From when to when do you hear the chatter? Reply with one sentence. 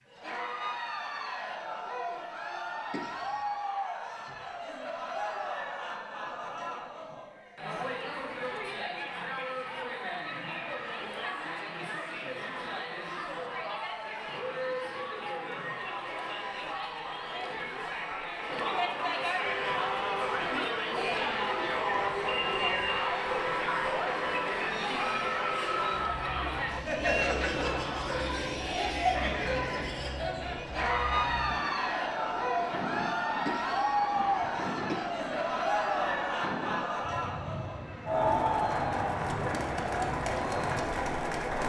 The chatter can be heard from 0.1 to 41.6 s.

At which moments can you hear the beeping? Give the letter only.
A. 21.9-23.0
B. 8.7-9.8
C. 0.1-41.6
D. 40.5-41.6
A.